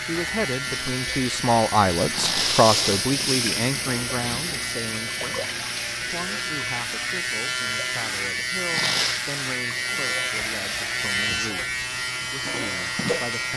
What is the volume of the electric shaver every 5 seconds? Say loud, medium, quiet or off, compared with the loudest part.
medium, loud, loud.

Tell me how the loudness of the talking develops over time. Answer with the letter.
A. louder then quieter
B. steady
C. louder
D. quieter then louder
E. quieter
E.